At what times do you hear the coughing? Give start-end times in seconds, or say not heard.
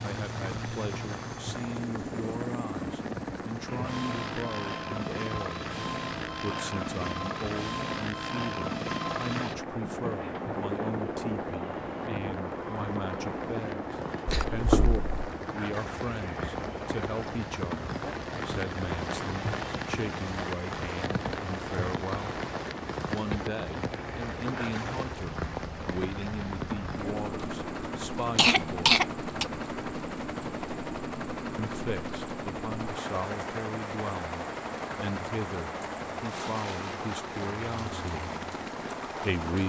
14.2-15.3, 28.4-29.4.